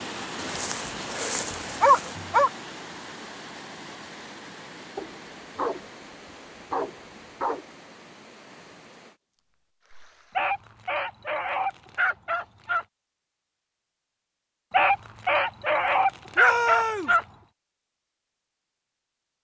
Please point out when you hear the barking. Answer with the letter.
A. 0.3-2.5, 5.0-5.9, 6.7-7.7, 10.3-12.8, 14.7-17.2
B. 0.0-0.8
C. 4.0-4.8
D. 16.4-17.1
A.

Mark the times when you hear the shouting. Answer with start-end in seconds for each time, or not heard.
16.4-17.1.